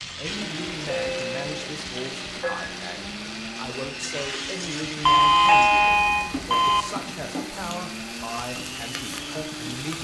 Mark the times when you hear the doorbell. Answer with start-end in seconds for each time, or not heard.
0.9-1.6, 5.0-6.8.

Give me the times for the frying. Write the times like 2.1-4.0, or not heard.
0.0-9.9.